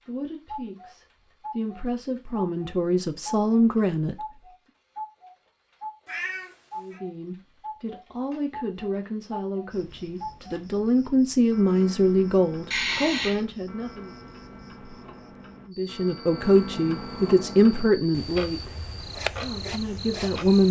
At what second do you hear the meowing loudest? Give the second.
13 s.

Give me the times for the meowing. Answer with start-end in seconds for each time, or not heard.
6.0-7.0, 12.7-13.4.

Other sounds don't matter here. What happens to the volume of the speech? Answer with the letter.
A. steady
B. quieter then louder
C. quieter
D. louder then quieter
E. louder
E.